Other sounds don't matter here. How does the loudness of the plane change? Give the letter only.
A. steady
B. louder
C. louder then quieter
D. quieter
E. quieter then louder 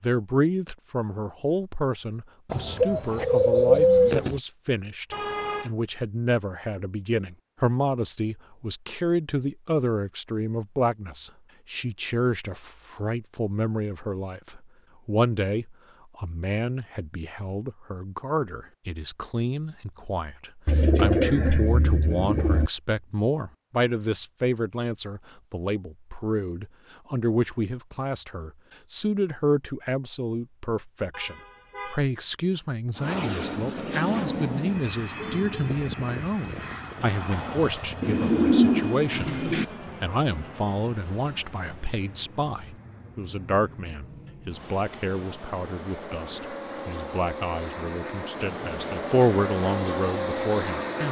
E.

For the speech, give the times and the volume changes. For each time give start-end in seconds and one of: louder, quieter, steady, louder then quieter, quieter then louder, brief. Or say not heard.
0.0-51.0 steady.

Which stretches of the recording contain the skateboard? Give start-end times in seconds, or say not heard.
not heard.